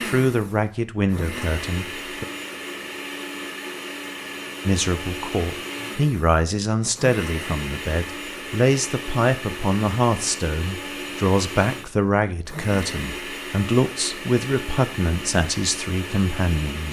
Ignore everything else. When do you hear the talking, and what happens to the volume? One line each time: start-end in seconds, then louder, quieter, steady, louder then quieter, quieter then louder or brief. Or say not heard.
0.0-2.2 brief
4.7-16.8 steady.